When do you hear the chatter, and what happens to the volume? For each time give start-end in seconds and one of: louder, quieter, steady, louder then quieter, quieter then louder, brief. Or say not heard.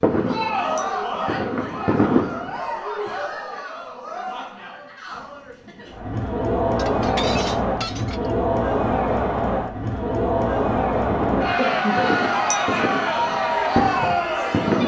0.0-14.8 quieter then louder.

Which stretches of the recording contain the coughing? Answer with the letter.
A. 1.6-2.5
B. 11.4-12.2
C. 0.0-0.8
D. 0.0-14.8
B.